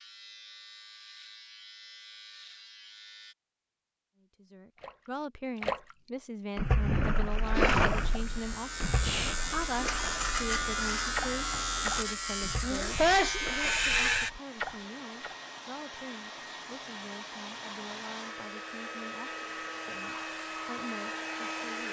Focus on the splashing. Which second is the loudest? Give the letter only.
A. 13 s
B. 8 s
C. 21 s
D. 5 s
B.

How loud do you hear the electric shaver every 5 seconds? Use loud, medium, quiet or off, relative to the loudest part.
quiet, medium, loud, off, off.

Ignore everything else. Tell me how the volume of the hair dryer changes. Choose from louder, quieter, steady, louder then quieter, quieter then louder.
louder.